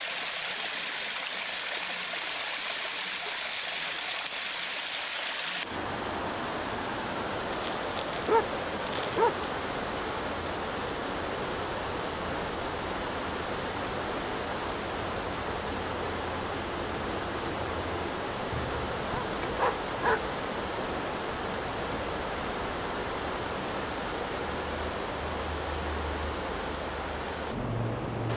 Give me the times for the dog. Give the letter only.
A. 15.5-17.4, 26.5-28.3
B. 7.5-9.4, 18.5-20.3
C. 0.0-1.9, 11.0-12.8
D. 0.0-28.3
B.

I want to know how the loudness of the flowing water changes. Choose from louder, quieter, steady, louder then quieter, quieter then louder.
steady.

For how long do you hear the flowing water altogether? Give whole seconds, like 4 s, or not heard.
28 s.